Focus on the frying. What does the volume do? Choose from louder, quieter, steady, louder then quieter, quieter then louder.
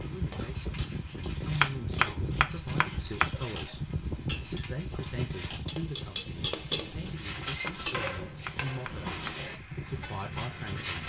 louder then quieter.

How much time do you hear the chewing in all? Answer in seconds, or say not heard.
not heard.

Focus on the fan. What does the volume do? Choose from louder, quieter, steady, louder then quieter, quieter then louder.
quieter.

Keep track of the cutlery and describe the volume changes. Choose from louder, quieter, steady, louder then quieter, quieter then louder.
louder.